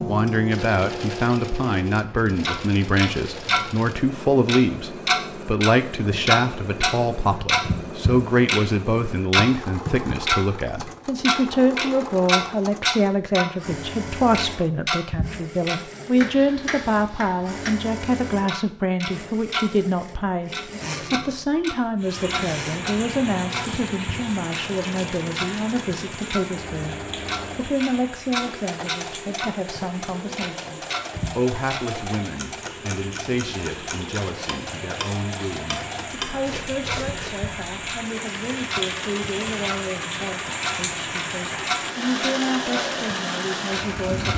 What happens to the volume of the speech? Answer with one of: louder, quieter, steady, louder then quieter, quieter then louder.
quieter.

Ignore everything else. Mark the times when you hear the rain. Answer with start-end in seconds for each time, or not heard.
21.9-44.3.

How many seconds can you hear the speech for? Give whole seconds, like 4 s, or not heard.
44 s.